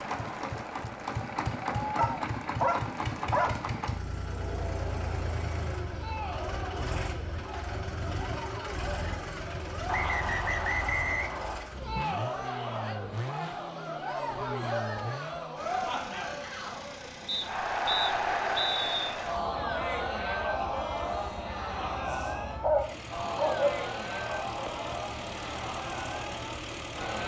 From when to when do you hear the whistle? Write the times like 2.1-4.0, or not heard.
9.8-11.7, 17.2-19.1.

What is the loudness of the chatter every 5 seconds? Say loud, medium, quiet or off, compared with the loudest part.
medium, medium, loud, loud, loud, medium.